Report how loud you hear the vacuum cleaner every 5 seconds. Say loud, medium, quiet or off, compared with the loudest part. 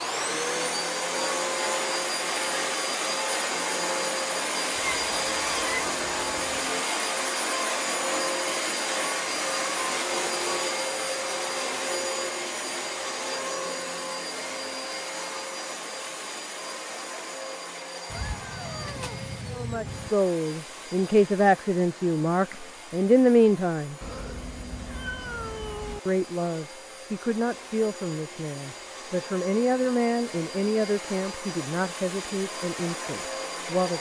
loud, loud, loud, medium, quiet, quiet, medium.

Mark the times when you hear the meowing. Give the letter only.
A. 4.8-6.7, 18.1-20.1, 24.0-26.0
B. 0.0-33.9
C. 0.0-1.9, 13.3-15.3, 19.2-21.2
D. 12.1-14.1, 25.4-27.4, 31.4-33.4
A.